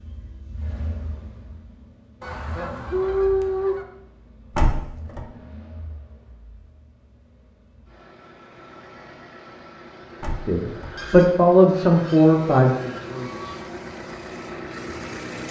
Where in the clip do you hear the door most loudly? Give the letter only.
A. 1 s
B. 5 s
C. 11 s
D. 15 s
B.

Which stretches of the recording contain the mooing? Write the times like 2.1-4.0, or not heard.
not heard.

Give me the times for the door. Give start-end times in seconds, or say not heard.
4.5-5.2, 10.2-10.9.